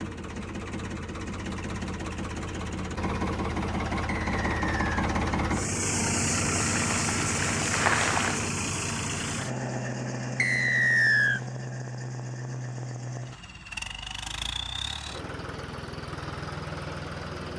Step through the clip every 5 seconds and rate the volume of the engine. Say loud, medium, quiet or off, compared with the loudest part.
loud, loud, medium, medium.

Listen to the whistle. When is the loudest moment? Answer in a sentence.
The loudest moment of the whistle is at 11 seconds.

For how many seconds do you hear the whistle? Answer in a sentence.
You can hear the whistle for 2 seconds altogether.